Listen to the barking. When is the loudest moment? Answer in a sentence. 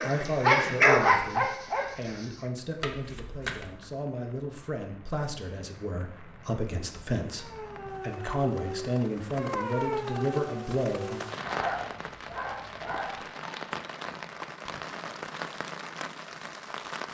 The loudest moment of the barking is at 1 second.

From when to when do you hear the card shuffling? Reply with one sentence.
The card shuffling can be heard from 2.8 to 3.9 s.